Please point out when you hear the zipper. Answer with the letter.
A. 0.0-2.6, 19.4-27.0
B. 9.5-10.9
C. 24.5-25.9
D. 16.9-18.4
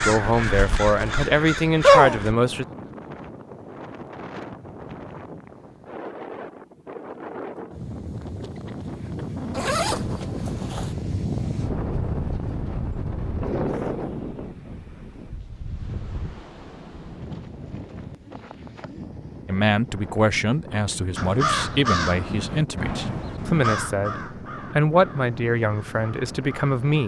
B.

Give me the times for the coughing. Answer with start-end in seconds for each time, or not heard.
not heard.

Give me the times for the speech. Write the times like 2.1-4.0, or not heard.
0.0-2.6, 19.4-27.0.